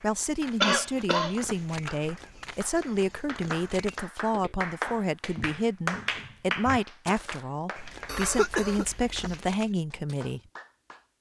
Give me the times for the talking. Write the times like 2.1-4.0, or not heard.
0.0-10.4.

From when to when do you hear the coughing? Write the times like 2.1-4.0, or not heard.
0.6-1.4, 8.1-9.3.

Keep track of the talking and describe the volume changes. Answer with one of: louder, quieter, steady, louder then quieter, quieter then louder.
steady.